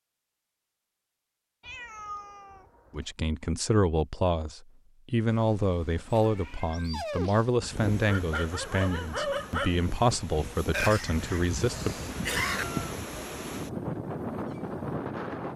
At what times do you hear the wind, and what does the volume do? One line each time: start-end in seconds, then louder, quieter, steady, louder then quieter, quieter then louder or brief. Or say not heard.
7.5-15.5 louder.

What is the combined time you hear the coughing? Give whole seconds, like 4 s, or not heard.
2 s.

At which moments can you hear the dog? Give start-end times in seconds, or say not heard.
6.1-9.8.